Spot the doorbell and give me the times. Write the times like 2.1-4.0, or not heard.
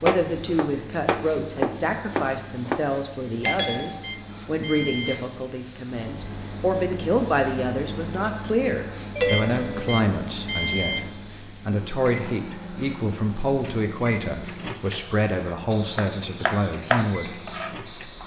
3.5-4.0, 9.2-9.9.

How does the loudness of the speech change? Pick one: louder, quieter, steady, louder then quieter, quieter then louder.
steady.